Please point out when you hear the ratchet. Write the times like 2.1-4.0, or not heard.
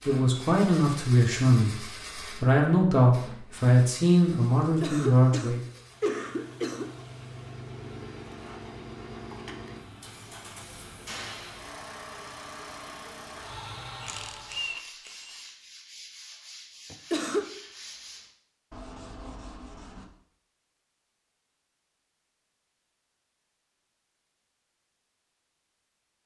14.0-15.5.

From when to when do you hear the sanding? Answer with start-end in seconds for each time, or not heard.
14.3-20.1.